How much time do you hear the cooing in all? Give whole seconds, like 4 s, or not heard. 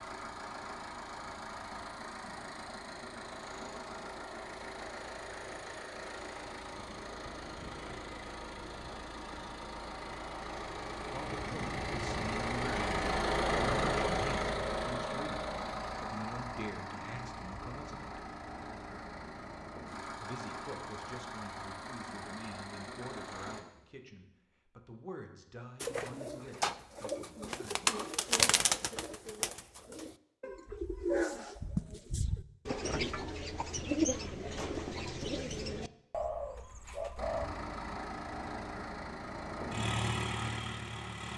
12 s.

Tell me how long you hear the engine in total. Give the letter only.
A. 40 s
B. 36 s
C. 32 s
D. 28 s
D.